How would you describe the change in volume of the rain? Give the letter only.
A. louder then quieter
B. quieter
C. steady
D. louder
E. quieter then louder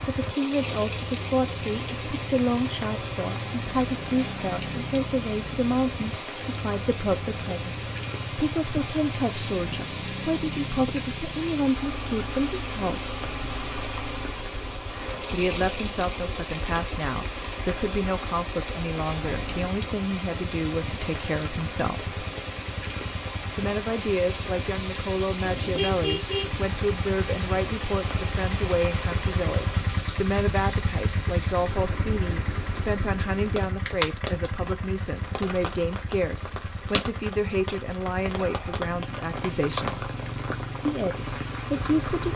C.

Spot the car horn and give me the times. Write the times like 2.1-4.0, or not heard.
25.4-26.6.